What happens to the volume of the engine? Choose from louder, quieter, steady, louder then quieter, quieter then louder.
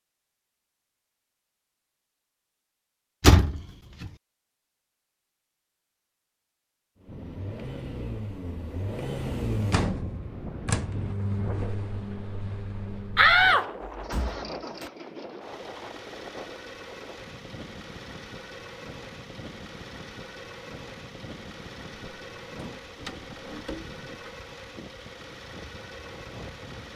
quieter.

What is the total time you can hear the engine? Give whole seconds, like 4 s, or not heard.
20 s.